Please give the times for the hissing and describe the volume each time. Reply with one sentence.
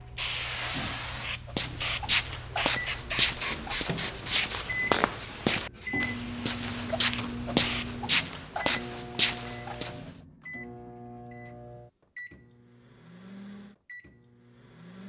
You can hear the hissing from 0.0 to 8.1 s, getting quieter then louder.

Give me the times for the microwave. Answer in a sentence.
You can hear the microwave from 2.8 to 15.0 s.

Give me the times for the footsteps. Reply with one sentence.
The footsteps can be heard from 1.6 to 9.9 s.